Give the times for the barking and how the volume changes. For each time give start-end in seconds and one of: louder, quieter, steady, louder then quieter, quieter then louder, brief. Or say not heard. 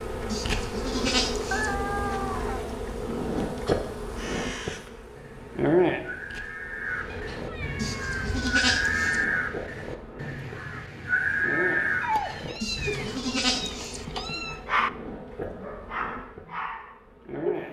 12.8-17.6 louder then quieter.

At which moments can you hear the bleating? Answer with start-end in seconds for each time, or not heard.
0.3-1.8, 7.8-9.2, 12.6-14.1.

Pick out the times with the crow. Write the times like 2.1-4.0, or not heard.
3.5-13.2.